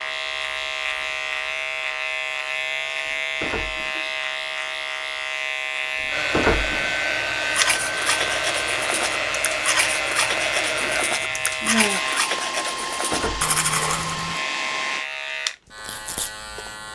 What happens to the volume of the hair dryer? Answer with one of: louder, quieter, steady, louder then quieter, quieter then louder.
steady.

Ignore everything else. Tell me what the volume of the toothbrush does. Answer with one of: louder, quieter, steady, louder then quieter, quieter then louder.
steady.